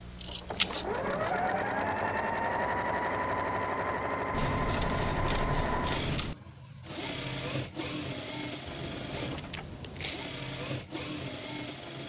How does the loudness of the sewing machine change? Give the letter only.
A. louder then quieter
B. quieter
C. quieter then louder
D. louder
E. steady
B.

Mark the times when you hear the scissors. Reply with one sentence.
The scissors can be heard from 0.2 to 1.4 s, from 4.3 to 6.3 s and from 8.7 to 10.2 s.